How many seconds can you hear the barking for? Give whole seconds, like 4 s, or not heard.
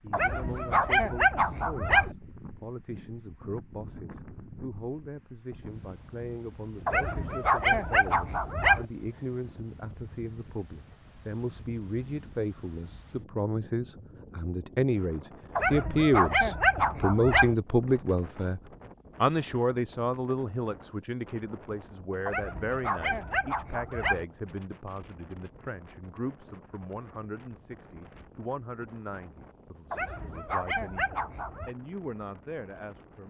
10 s.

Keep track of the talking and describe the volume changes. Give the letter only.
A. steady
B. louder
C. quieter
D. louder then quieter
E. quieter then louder
D.